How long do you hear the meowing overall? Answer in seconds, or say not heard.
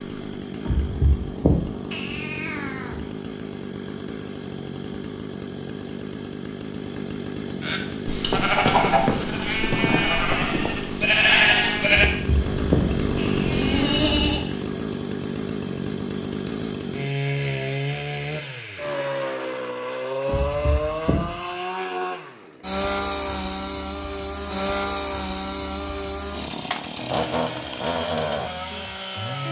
6 s.